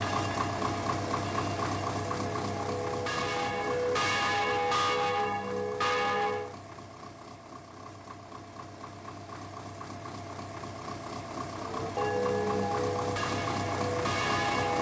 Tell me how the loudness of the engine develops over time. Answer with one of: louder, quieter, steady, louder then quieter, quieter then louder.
quieter then louder.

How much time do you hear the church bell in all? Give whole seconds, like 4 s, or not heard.
10 s.